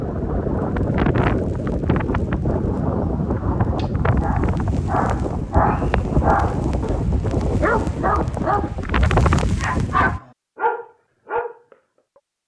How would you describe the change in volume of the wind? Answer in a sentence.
The volume of the wind stays about the same.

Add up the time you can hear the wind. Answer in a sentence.
The wind can be heard for 10 seconds in total.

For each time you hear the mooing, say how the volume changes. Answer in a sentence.
You can't hear the mooing here.